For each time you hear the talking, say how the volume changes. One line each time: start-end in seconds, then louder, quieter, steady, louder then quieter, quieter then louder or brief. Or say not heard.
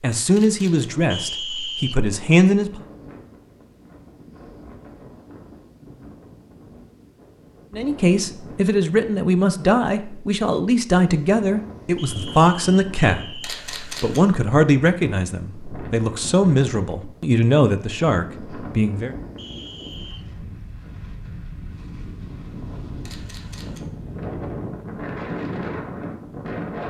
0.0-2.8 brief
7.7-19.1 steady.